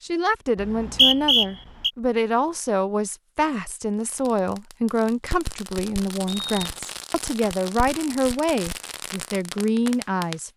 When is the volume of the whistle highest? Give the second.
1 s.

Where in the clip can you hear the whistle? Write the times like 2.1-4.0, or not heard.
0.6-1.9, 6.2-6.7.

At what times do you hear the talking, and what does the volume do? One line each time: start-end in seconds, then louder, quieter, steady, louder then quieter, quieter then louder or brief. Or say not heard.
0.0-10.5 steady.